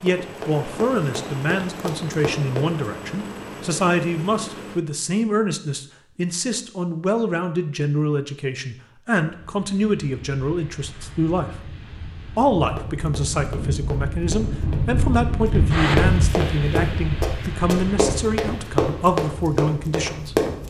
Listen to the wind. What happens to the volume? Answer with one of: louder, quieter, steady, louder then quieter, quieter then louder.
louder then quieter.